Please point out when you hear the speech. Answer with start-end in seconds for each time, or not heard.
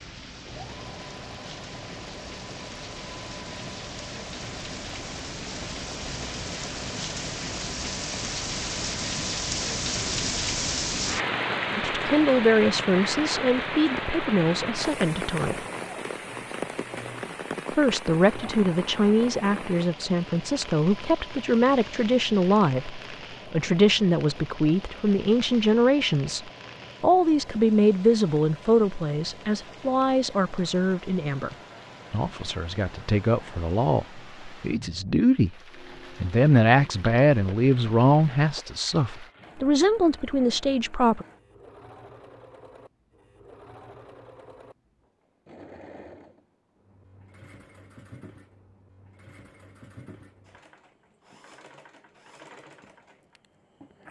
11.8-15.6, 17.7-35.5, 36.2-41.2.